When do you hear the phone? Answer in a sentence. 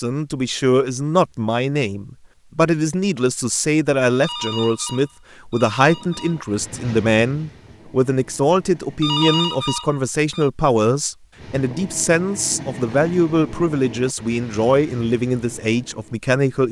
You can hear the phone from 4.2 to 6.4 s and from 9.0 to 10.5 s.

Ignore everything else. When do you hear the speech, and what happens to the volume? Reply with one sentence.
The speech can be heard from 0.0 to 16.6 s, at a steady volume.